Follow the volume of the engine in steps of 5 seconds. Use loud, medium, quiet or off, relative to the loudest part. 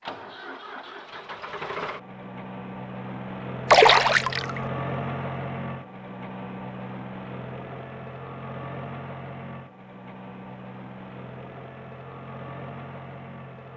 loud, loud, medium.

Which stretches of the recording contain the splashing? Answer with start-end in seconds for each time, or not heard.
3.7-4.6.